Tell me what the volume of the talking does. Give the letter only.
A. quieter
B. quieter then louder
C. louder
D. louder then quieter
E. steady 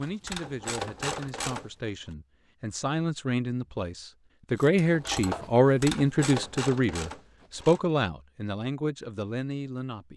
D.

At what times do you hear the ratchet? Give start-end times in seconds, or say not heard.
0.0-1.7, 4.5-7.9.